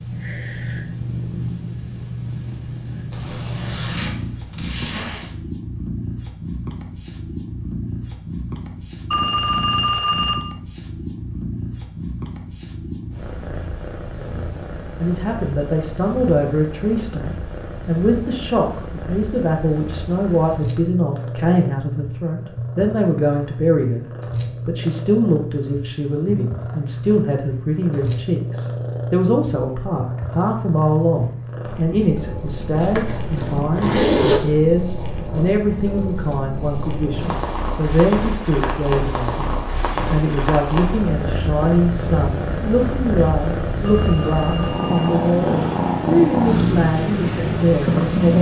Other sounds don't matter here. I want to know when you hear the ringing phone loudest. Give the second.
10 s.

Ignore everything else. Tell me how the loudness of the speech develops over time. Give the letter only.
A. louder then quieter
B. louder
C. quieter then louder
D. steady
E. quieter
D.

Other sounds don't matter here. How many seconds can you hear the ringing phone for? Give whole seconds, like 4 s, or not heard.
3 s.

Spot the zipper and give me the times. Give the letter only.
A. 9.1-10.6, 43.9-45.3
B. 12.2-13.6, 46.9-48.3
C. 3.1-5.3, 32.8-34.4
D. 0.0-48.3
C.